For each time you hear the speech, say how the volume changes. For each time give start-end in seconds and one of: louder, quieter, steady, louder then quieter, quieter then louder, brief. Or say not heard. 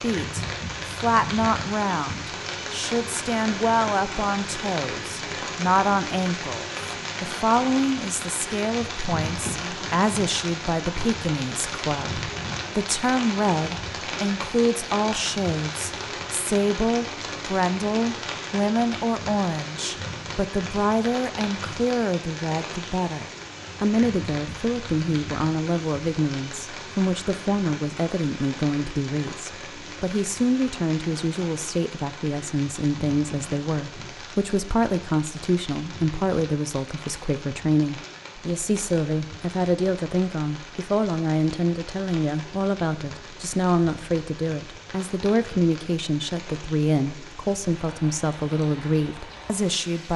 0.0-50.1 steady.